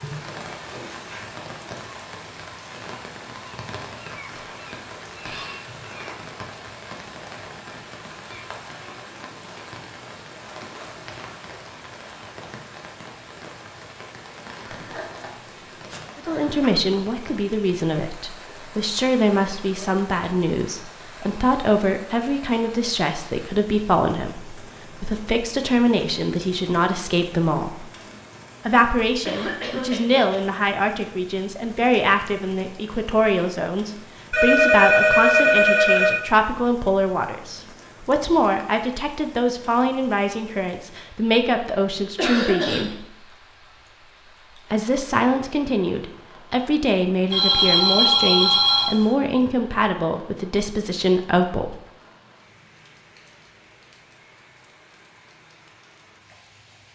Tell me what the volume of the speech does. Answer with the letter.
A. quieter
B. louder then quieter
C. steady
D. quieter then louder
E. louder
C.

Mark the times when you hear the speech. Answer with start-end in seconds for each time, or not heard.
16.1-27.9, 28.6-43.0, 44.7-51.8.